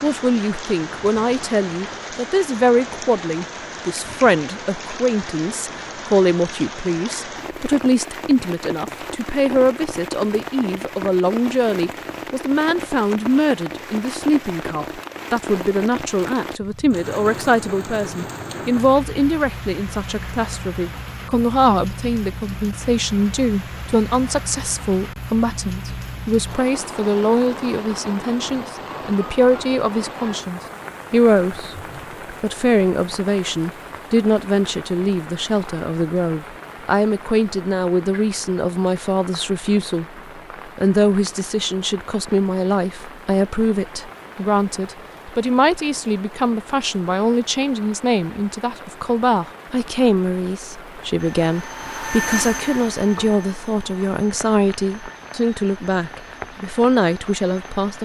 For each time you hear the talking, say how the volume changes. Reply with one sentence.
You can hear the talking from 0.0 to 31.8 s, at a steady volume; and from 32.4 to 57.9 s, at a steady volume.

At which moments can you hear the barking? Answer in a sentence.
You can't hear the barking here.